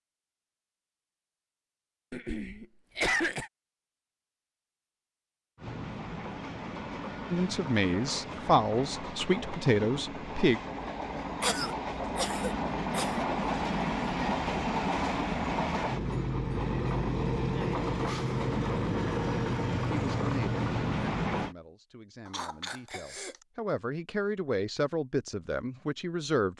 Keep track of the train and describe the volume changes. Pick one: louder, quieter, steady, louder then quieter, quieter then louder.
louder.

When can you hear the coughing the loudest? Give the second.
3 s.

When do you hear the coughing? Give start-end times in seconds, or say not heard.
2.1-3.5, 11.4-13.1, 22.2-23.4.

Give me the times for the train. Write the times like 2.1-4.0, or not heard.
5.5-21.6.